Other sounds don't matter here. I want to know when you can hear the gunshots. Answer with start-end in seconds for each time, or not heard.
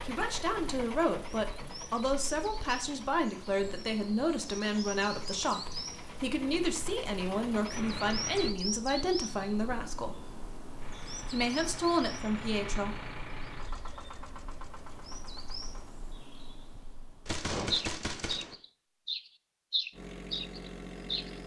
17.2-18.6.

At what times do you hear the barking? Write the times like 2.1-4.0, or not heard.
not heard.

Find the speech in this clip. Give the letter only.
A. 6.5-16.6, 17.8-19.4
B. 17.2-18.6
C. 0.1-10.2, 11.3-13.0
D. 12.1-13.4
C.